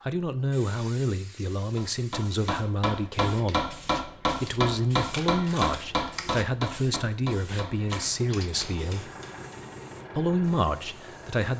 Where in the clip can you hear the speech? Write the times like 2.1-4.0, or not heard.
0.1-9.1, 10.2-11.5.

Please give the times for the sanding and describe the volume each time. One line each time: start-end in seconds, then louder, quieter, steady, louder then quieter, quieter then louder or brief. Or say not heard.
not heard.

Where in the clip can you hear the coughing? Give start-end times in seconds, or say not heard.
not heard.